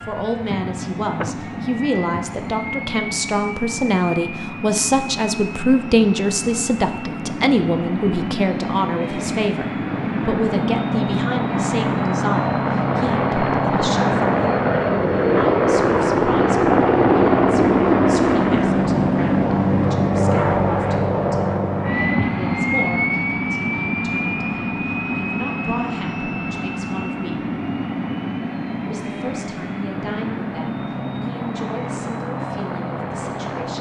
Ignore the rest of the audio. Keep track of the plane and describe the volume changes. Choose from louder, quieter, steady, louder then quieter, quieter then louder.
louder then quieter.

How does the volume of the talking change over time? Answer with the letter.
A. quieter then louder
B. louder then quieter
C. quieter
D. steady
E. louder
C.